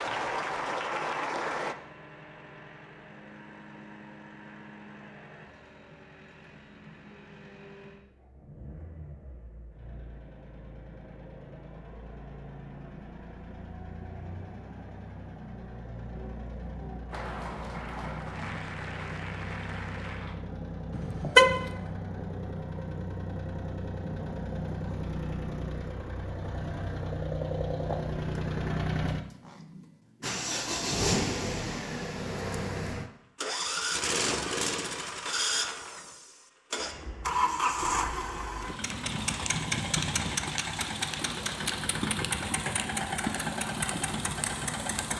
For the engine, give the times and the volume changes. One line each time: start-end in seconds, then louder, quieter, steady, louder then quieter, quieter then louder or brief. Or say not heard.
0.0-45.1 louder.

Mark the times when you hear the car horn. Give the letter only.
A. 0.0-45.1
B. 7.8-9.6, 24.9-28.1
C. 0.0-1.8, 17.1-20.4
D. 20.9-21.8
D.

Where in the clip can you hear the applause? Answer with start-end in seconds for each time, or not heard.
0.0-1.8, 17.1-20.4.